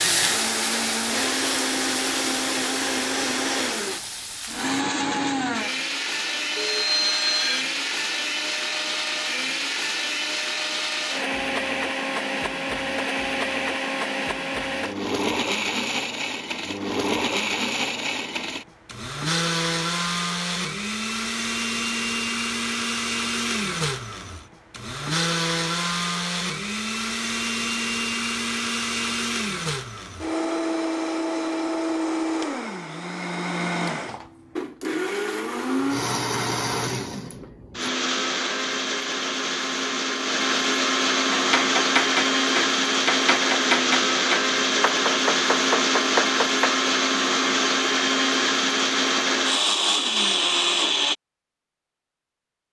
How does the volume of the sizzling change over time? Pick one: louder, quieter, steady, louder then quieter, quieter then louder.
quieter.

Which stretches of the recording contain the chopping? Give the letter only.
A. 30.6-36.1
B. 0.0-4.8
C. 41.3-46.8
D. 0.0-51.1
C.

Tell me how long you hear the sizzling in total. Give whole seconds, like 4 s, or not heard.
5 s.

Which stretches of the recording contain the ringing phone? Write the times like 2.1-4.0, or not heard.
6.5-7.7.